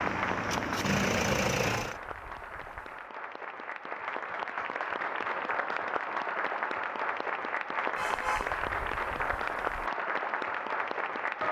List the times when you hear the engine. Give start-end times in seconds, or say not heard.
0.0-2.0.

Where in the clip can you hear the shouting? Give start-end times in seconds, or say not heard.
not heard.